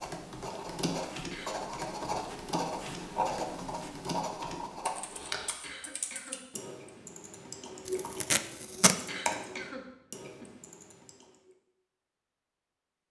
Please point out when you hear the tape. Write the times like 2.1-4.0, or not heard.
7.8-9.0.